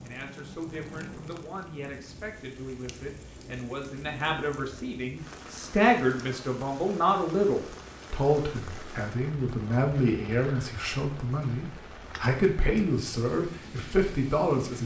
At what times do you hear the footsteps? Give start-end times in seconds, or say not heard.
not heard.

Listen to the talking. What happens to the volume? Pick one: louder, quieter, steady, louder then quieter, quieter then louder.
louder.